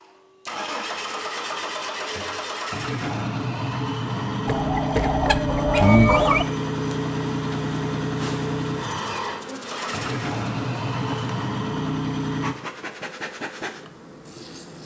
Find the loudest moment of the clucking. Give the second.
6 s.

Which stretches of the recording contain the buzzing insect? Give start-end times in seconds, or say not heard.
6.3-14.8.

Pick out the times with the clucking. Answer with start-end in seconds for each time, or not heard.
4.5-6.5.